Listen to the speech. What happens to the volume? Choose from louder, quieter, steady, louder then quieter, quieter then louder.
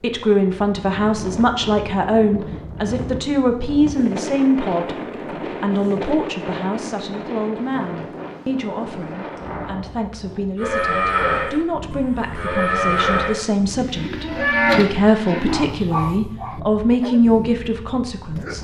quieter then louder.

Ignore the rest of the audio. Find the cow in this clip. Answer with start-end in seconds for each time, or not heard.
10.6-15.7.